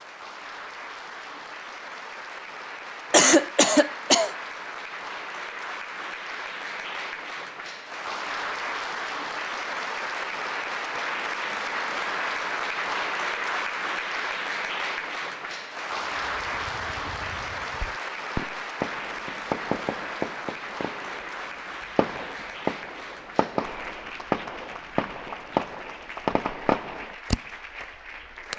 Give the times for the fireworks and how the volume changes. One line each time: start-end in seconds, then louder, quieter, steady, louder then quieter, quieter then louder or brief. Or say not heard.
16.1-27.9 louder.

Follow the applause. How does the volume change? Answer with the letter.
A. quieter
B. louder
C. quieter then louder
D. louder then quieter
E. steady
D.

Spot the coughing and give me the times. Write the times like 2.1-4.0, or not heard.
3.1-4.3.